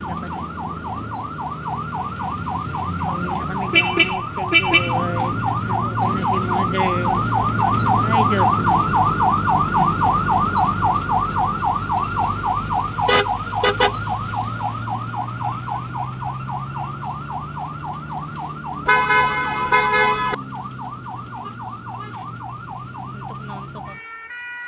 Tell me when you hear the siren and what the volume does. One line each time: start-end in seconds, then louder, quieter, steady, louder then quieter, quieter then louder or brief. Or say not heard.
0.0-24.6 louder then quieter.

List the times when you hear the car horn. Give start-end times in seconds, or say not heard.
2.9-5.1, 13.1-13.9, 18.9-20.4.